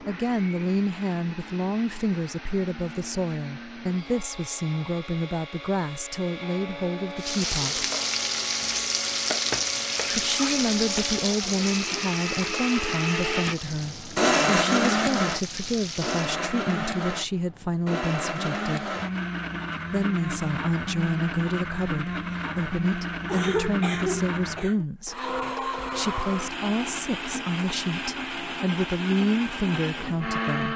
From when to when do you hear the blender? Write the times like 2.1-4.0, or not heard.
0.0-30.7.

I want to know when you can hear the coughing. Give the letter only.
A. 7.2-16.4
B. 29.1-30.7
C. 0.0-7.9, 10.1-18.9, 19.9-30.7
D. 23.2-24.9
D.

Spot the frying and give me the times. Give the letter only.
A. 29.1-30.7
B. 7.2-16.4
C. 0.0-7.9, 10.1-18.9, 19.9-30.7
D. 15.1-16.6
B.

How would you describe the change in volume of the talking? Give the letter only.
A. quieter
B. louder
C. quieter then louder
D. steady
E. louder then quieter
D.